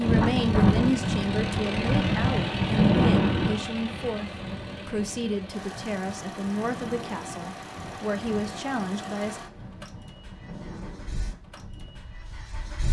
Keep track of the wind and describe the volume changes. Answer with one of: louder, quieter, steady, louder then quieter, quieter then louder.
quieter.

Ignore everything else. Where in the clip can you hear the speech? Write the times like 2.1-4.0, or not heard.
0.0-9.4.